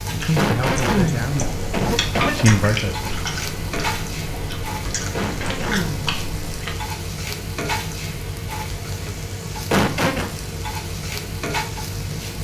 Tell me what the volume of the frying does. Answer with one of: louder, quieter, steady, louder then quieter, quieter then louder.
steady.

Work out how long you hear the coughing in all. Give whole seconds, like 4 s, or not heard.
4 s.